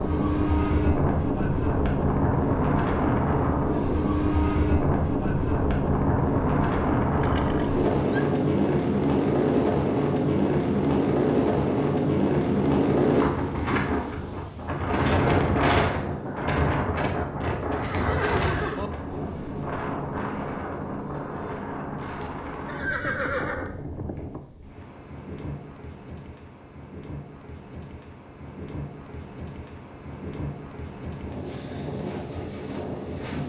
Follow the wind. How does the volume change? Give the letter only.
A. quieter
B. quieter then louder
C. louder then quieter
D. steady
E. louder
A.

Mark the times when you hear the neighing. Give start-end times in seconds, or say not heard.
7.2-8.2, 17.7-18.9, 22.6-24.4.